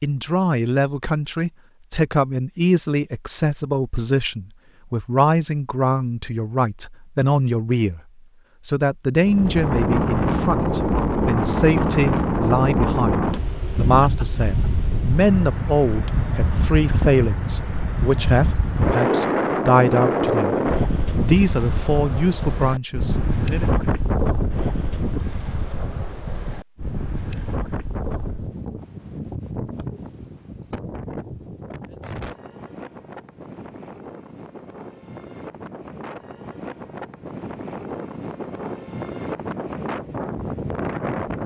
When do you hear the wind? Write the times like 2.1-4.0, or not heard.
9.2-41.4.